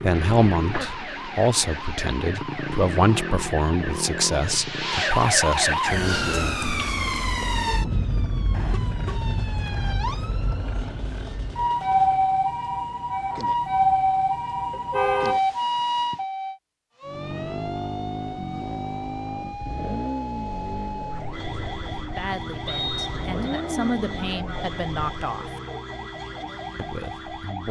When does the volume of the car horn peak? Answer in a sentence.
The volume of the car horn peaks at 15 seconds.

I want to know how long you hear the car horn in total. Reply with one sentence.
The car horn can be heard for 2 seconds in total.